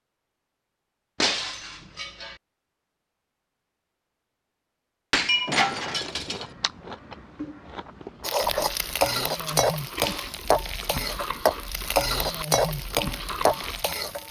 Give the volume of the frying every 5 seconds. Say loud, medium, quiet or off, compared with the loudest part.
off, loud, loud.